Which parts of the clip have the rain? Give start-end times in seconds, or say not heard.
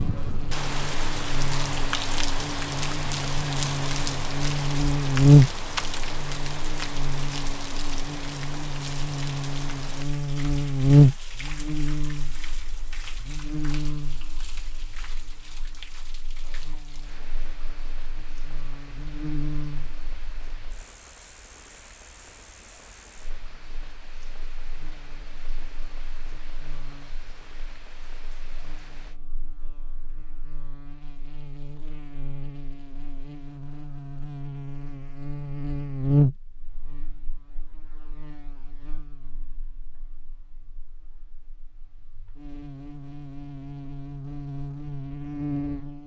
0.0-29.2.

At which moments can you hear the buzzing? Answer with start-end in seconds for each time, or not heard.
0.0-46.0.